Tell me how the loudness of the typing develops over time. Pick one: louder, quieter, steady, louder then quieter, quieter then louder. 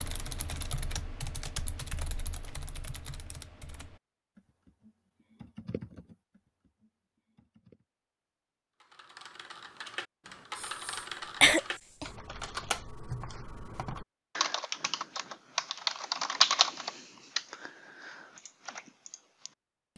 quieter then louder.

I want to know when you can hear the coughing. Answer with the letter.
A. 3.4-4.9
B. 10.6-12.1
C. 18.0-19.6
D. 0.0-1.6
B.